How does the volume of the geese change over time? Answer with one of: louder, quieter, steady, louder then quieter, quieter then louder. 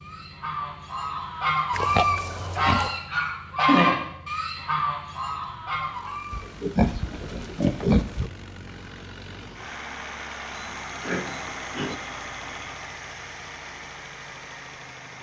louder then quieter.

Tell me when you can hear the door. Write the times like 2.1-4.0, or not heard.
not heard.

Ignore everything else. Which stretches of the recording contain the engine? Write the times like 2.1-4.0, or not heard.
0.0-15.1.